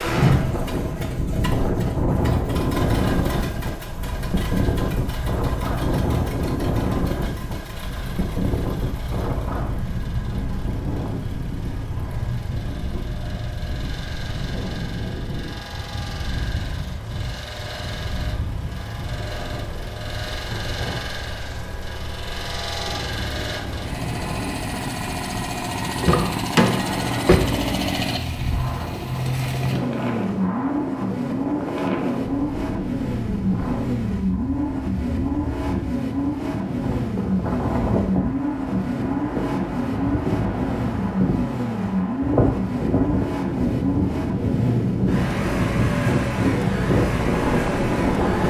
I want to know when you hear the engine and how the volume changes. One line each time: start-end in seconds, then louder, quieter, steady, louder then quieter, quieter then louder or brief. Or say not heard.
0.0-48.4 louder.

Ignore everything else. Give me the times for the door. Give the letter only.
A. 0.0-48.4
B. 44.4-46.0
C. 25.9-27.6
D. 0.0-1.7
C.